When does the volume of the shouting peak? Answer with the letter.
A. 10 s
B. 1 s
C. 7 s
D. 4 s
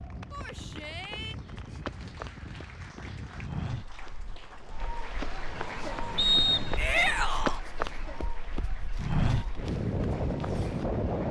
C.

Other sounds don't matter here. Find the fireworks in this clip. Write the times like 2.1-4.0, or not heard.
not heard.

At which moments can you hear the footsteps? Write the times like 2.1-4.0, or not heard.
0.3-10.8.